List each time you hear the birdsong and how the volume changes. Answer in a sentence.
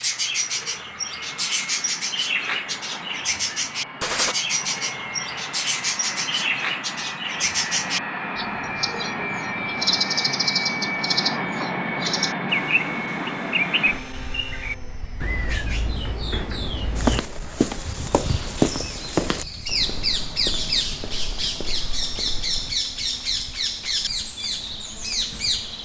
The birdsong can be heard from 0.0 to 25.8 s, at a steady volume.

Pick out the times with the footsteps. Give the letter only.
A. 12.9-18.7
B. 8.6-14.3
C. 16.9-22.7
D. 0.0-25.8
C.